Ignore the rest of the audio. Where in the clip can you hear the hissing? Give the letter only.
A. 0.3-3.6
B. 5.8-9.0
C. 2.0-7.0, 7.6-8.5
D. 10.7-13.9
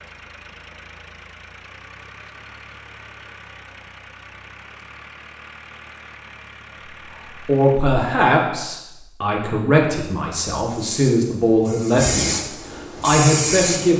D.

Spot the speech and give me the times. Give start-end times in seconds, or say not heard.
7.5-12.4, 13.0-13.9.